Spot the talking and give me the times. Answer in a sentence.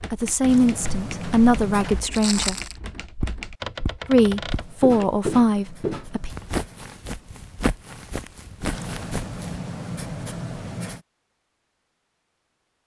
You can hear the talking from 0.1 to 2.5 s and from 4.0 to 6.3 s.